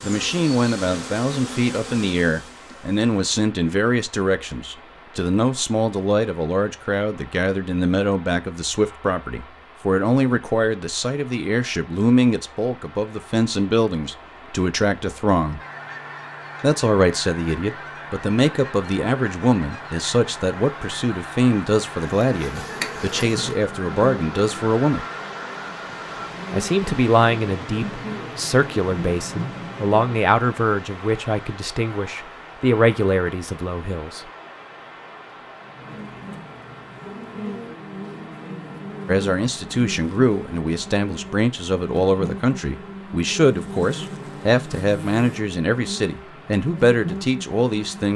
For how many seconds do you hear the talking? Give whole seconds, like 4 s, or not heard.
41 s.